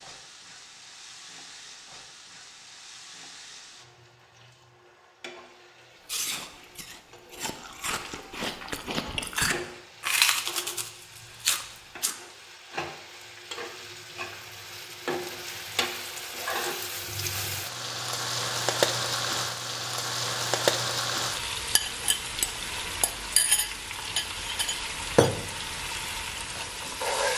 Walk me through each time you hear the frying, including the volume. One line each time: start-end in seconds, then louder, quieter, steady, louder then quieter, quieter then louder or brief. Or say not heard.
0.0-27.3 louder.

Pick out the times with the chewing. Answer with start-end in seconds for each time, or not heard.
6.0-12.2.